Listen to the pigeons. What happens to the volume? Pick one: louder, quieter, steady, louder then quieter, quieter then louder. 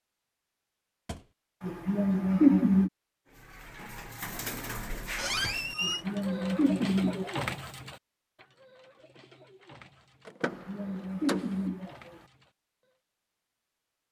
quieter.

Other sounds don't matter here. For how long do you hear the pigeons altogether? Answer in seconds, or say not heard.
10 s.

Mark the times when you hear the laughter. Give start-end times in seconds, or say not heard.
1.6-2.9, 5.8-7.5, 10.4-12.2.